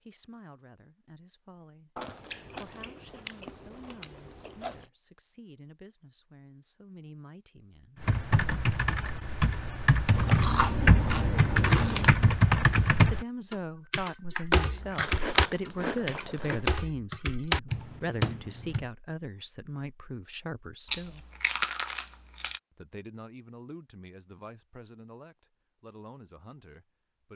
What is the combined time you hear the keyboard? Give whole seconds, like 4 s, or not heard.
11 s.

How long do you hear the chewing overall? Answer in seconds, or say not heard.
9 s.